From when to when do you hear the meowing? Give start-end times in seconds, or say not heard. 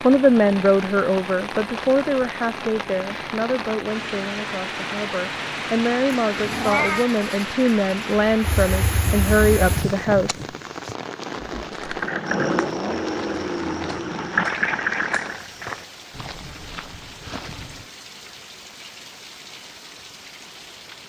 6.3-7.1.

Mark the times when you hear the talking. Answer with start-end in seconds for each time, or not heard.
0.0-10.4.